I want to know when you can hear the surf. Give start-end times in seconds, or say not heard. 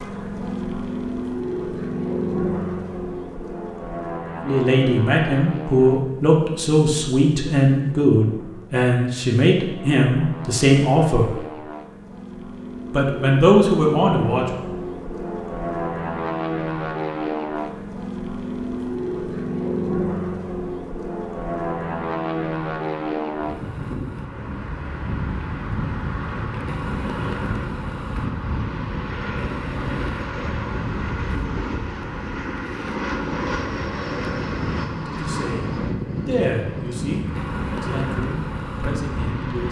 not heard.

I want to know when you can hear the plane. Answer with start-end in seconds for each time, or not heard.
0.0-39.6.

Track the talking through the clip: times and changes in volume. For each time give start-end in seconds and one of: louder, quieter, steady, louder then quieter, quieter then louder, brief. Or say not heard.
4.4-11.3 steady
12.9-14.5 brief
35.0-39.6 louder then quieter.